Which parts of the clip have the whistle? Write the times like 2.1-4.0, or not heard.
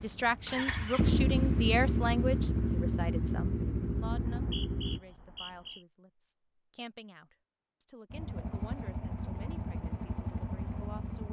4.1-5.8.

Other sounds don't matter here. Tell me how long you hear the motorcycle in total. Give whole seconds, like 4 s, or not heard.
8 s.